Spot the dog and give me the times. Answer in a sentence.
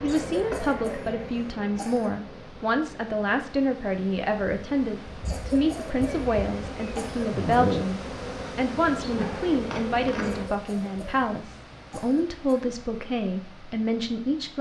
The dog can't be heard in this clip.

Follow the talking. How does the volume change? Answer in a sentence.
The volume of the talking stays about the same.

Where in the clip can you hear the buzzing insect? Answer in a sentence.
The buzzing insect can be heard from 0.0 to 10.4 s.